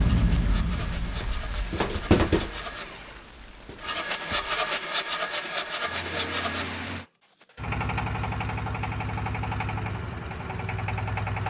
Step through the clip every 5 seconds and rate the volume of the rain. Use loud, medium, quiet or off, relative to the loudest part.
loud, medium, off.